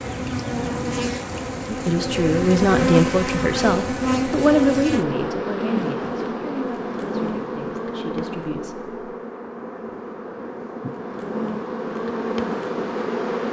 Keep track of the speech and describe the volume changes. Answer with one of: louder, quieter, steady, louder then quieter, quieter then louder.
quieter.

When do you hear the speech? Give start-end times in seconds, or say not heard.
1.6-8.8.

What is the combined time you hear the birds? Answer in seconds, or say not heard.
not heard.